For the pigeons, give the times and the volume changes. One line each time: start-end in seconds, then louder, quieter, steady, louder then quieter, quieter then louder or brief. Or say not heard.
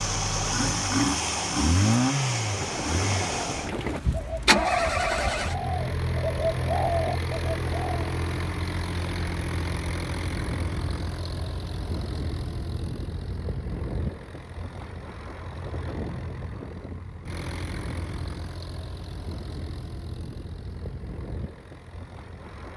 2.3-8.1 louder.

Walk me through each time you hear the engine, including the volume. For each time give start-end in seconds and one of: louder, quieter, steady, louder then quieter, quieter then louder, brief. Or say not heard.
0.0-22.7 quieter.